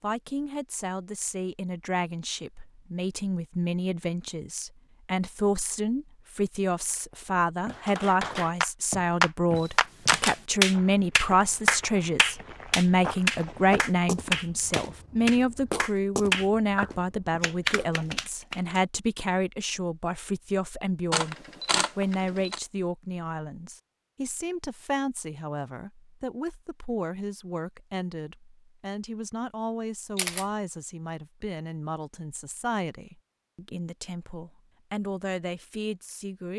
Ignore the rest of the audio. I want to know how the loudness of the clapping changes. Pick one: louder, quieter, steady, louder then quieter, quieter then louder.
quieter.